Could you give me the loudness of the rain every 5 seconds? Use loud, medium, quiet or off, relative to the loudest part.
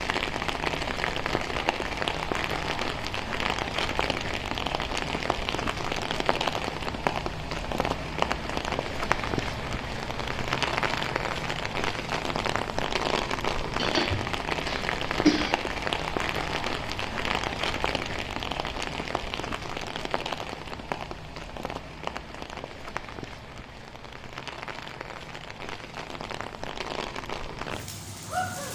loud, loud, loud, loud, medium, medium.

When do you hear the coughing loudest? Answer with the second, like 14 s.
15 s.